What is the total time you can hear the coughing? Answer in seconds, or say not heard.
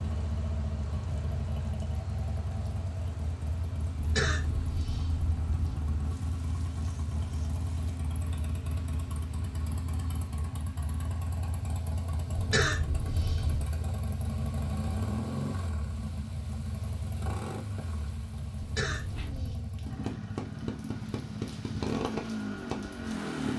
4 s.